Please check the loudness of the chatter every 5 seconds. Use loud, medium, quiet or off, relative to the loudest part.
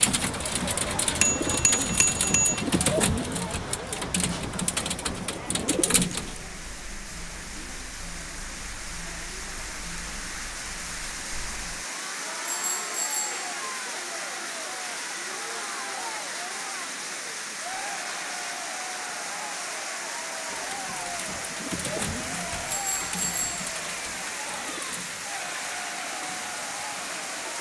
loud, medium, loud, loud, loud, loud.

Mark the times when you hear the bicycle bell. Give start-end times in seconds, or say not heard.
1.2-2.6, 12.4-13.3, 22.7-23.6.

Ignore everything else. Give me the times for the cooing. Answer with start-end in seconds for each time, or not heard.
0.0-6.4, 20.4-27.5.